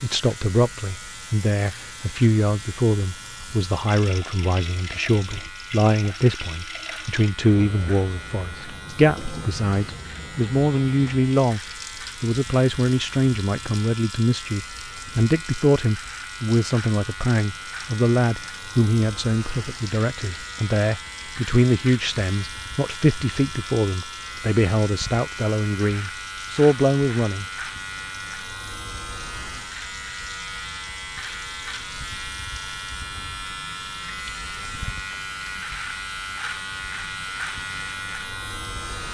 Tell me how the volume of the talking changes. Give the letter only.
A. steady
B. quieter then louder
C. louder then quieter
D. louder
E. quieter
A.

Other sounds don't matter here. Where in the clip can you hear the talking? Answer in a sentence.
You can hear the talking from 0.0 to 11.6 s and from 12.2 to 27.4 s.